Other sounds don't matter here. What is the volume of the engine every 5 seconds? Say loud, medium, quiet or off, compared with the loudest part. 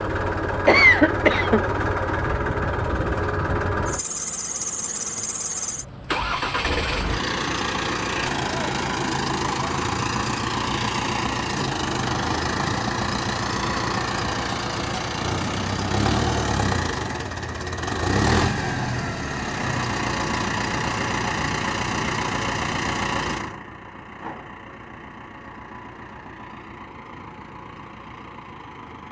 loud, loud, loud, loud, loud, quiet.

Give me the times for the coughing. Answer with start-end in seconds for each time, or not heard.
0.7-1.6.